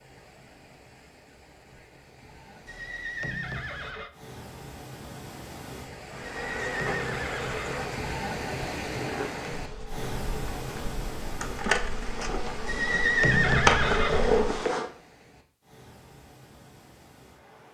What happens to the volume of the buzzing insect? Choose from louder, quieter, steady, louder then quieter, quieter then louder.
quieter then louder.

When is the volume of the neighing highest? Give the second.
13 s.